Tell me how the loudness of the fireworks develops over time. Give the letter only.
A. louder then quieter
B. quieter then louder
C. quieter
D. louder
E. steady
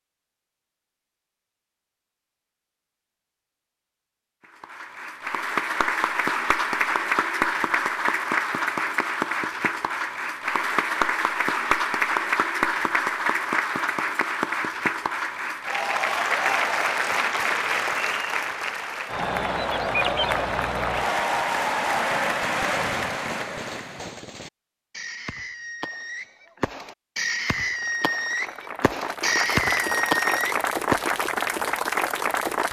D.